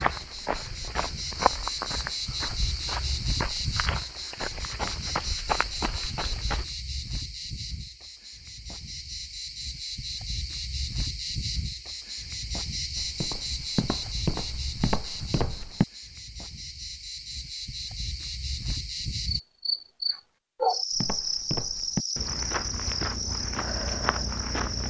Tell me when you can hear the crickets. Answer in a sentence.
The crickets can be heard from 0.0 to 24.8 s.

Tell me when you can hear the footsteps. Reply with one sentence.
You can hear the footsteps from 0.0 to 6.7 s, from 12.9 to 15.8 s and from 20.9 to 24.8 s.